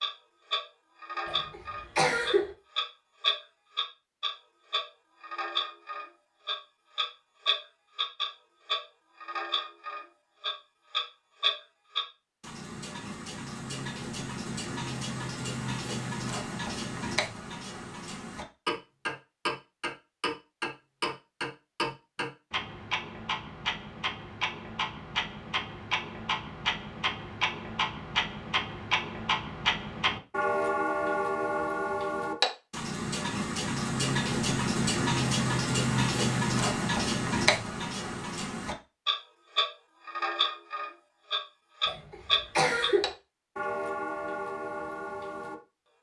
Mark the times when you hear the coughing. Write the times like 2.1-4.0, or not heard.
1.2-2.5, 41.9-43.1.